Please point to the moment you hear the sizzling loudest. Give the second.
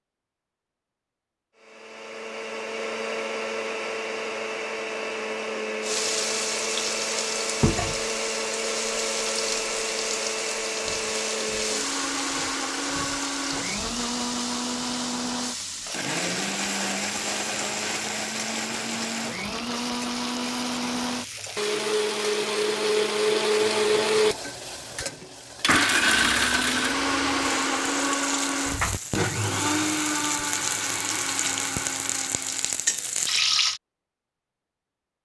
33 s.